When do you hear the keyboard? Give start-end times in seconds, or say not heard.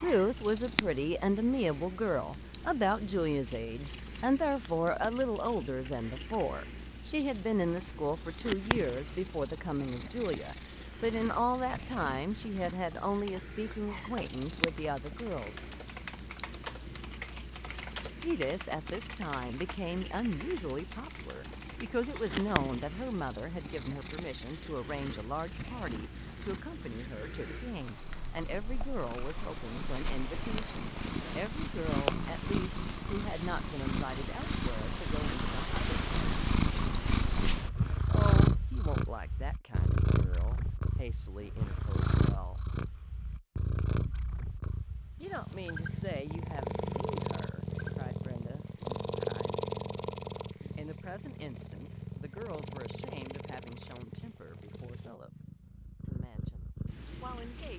12.8-22.4.